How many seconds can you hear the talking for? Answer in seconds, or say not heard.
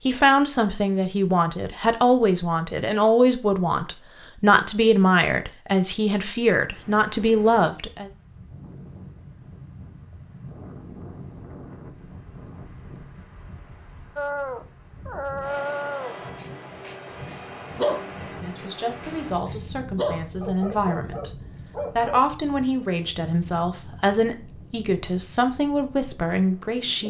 17 s.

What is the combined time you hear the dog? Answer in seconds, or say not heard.
8 s.